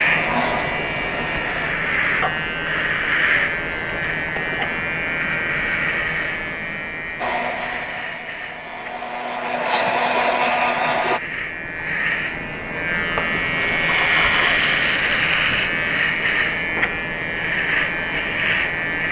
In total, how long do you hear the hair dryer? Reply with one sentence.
You can hear the hair dryer for 6 seconds altogether.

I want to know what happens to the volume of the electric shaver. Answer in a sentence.
The volume of the electric shaver goes down, then up.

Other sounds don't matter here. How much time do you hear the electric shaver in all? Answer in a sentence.
The electric shaver can be heard for 19 seconds in total.